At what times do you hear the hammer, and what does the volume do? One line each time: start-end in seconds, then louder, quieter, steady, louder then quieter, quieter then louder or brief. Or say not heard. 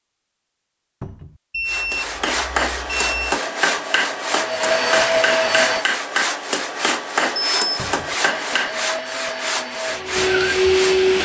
1.9-8.8 steady.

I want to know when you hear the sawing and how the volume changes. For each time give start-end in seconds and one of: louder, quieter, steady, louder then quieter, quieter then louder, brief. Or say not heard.
1.6-11.0 steady.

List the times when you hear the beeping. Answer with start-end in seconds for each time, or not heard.
1.5-3.4, 7.3-7.9.